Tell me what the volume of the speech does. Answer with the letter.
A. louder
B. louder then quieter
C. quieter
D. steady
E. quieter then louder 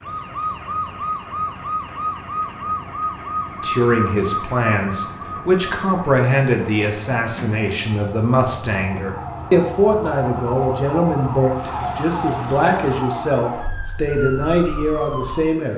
D.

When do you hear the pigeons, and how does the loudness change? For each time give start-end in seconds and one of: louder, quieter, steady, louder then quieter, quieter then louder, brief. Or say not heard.
not heard.